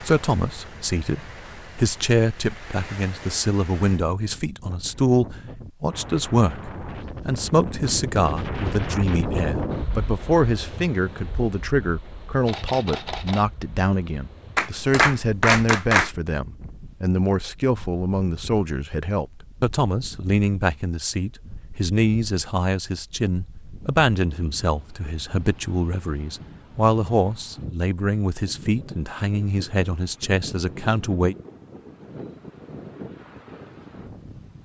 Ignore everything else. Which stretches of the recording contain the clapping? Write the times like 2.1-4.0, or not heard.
14.6-16.1.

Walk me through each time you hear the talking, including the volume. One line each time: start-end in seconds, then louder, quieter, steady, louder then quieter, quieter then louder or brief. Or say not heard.
0.0-31.4 steady.